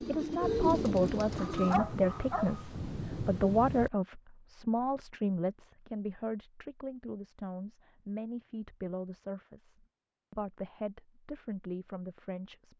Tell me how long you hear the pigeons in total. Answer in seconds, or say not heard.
2 s.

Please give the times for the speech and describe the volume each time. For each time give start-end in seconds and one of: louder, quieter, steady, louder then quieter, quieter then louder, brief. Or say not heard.
0.0-12.7 quieter.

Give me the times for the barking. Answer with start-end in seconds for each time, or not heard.
1.4-2.6.